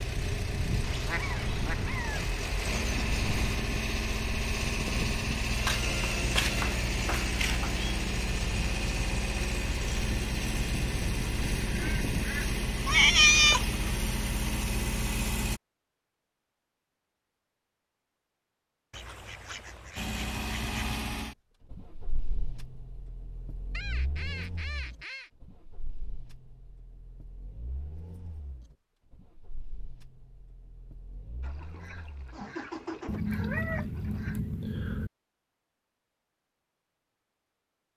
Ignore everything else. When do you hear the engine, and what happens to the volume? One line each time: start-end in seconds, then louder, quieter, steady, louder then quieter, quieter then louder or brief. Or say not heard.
0.0-15.6 steady
19.9-33.2 quieter then louder.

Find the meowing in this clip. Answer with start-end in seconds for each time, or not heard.
5.5-7.9, 12.8-13.7, 33.0-35.1.